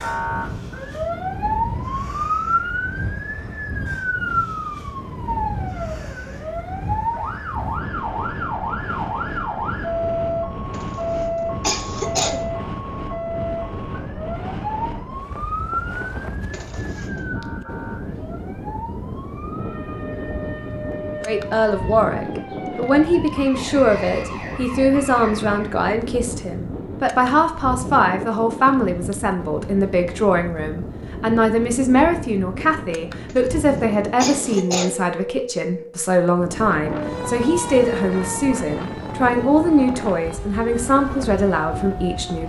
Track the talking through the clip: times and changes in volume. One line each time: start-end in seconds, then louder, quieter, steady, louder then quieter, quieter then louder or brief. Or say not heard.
21.2-42.4 steady.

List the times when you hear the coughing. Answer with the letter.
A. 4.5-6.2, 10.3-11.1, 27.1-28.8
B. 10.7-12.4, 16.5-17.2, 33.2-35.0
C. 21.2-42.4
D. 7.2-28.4
B.